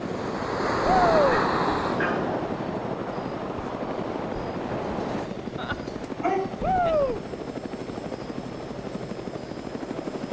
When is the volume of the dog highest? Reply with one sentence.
The loudest moment of the dog is at 6 seconds.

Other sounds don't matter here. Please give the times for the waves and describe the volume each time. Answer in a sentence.
You can hear the waves from 0.0 to 5.3 s, getting quieter.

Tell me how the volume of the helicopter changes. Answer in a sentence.
The volume of the helicopter stays about the same.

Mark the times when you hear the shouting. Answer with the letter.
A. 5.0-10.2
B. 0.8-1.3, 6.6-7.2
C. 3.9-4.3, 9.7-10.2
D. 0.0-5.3
B.